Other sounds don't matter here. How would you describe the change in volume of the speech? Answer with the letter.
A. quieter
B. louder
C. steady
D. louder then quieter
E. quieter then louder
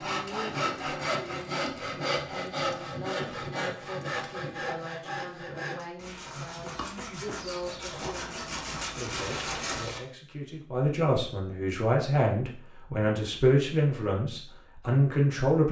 B.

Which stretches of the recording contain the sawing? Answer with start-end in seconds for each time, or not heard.
0.0-10.0.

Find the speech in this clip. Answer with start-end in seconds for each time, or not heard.
0.0-15.6.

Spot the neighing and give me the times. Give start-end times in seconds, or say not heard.
not heard.